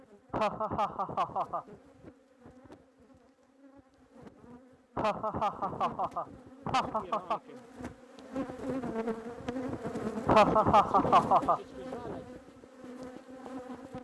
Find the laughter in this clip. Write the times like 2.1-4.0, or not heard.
0.3-1.6, 5.0-7.4, 10.2-11.6.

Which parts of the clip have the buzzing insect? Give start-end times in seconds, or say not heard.
0.0-13.9.